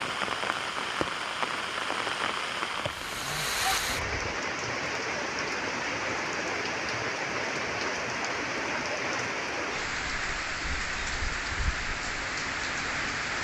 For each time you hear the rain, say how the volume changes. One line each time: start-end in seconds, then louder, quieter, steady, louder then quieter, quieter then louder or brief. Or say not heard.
0.0-13.3 steady.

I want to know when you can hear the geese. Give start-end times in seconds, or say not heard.
3.0-4.4.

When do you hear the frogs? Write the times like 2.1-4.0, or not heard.
not heard.